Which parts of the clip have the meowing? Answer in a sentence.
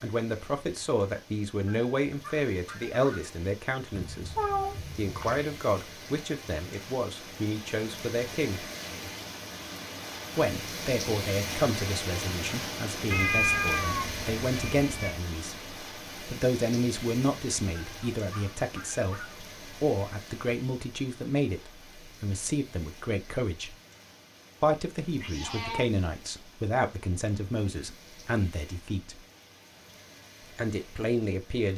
You can hear the meowing from 3.9 to 5.5 s, from 13.1 to 15.1 s and from 25.1 to 25.9 s.